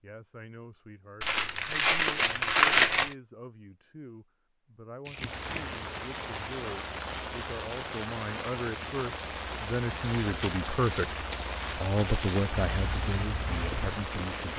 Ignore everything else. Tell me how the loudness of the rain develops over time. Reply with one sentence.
The loudness of the rain stays about the same.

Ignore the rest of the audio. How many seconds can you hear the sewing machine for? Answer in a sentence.
You can't hear the sewing machine here.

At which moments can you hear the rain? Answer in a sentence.
You can hear the rain from 5.2 to 14.5 s.